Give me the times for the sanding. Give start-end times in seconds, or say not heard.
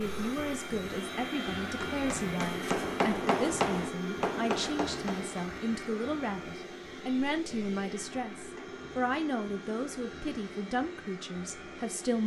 not heard.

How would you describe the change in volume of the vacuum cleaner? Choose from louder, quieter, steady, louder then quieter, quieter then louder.
quieter.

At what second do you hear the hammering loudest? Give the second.
3 s.